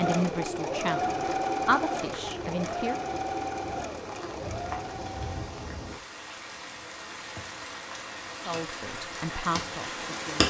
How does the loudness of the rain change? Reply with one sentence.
The volume of the rain goes up.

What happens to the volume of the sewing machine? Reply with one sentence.
The volume of the sewing machine goes down.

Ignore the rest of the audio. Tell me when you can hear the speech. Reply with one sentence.
You can hear the speech from 0.0 to 3.0 s and from 8.4 to 10.4 s.